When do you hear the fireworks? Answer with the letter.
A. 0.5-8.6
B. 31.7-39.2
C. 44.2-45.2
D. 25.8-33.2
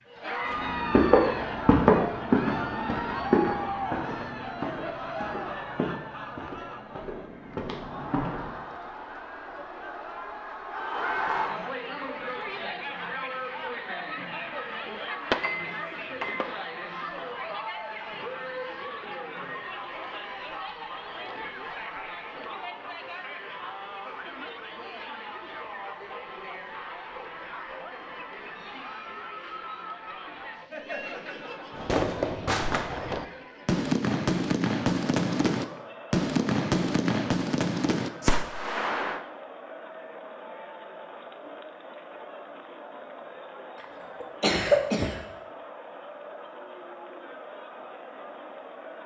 B.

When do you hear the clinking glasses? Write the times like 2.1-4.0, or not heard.
15.3-16.4.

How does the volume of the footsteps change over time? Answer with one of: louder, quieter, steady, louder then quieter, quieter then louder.
quieter.